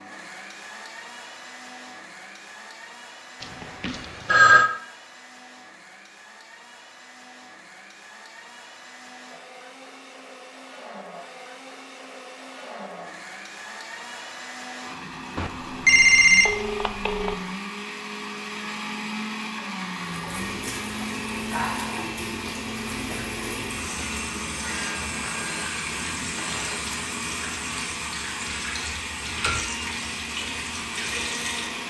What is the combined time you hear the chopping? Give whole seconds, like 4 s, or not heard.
not heard.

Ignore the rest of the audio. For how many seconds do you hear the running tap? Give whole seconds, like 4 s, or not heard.
12 s.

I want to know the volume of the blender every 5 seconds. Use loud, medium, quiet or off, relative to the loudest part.
medium, quiet, medium, loud, loud, loud, loud.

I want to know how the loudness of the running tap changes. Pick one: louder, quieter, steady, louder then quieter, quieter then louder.
steady.